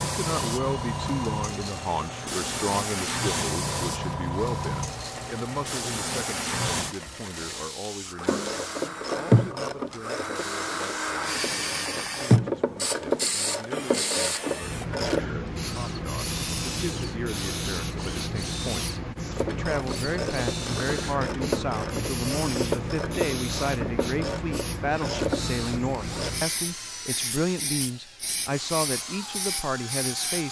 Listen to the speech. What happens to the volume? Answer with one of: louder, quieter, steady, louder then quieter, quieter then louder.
quieter then louder.